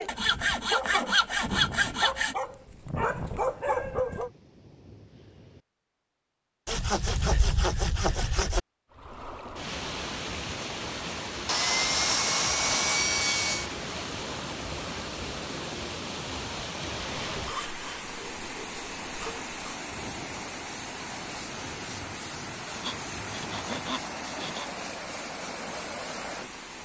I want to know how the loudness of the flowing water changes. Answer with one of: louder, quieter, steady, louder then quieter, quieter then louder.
steady.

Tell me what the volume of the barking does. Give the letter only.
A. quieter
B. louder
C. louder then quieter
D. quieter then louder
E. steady
D.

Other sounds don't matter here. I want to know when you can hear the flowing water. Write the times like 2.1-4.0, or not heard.
8.9-26.7.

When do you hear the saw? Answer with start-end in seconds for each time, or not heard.
0.1-2.4, 6.7-8.6, 11.4-13.7, 17.4-19.6, 22.8-24.7.